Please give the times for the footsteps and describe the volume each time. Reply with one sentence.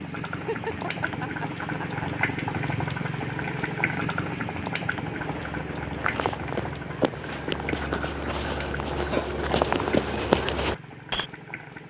The footsteps can be heard from 5.0 to 11.2 s, getting louder.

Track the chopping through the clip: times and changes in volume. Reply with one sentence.
You can't hear the chopping here.